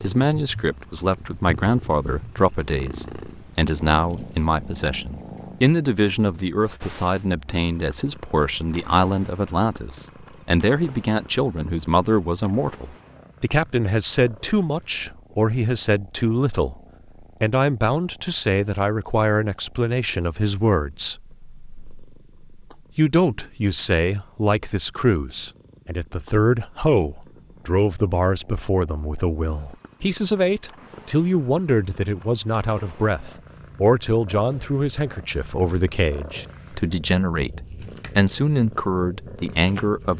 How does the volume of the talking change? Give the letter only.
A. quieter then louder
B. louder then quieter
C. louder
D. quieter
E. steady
E.